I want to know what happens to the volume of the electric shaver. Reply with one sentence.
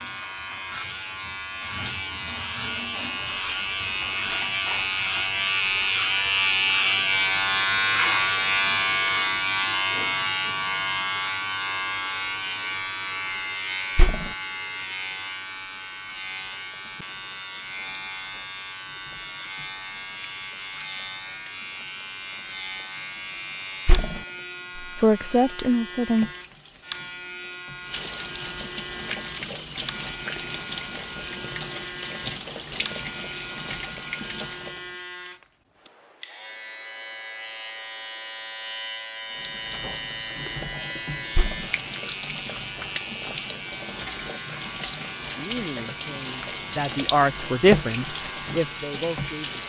The loudness of the electric shaver goes down.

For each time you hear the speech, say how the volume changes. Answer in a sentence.
The speech can be heard briefly from 25.0 to 26.3 s; and from 45.4 to 49.6 s, getting louder then quieter.